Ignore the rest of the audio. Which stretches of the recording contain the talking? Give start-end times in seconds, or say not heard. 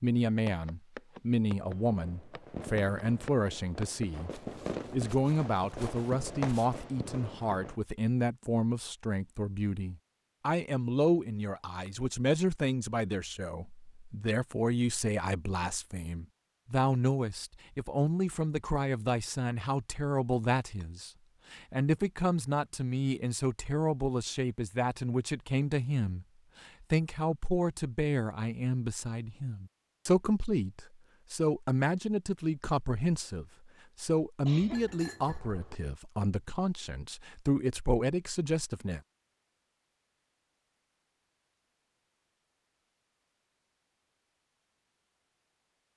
0.0-4.3, 4.9-39.0.